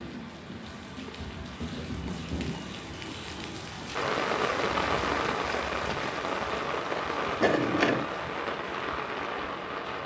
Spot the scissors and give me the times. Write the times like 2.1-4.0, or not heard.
7.4-8.1.